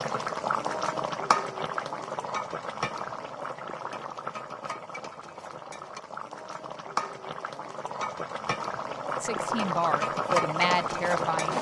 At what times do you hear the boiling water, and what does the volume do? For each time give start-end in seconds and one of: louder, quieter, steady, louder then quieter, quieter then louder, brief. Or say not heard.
0.0-11.5 quieter then louder.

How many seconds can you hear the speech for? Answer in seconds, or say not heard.
2 s.